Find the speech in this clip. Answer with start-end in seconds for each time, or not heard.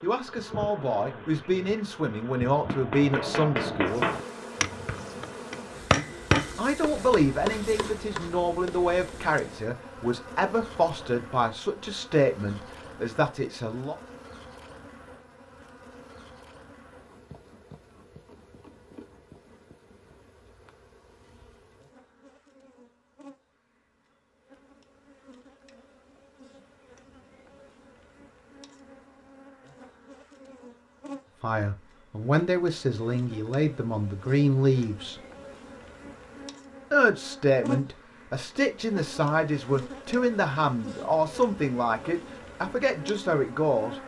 0.0-4.0, 6.5-13.9, 31.4-35.2, 36.9-44.0.